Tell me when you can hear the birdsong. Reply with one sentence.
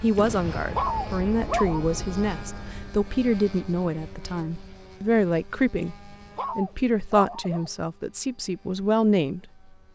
You can't hear the birdsong here.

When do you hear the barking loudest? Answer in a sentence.
The loudest moment of the barking is at 1 second.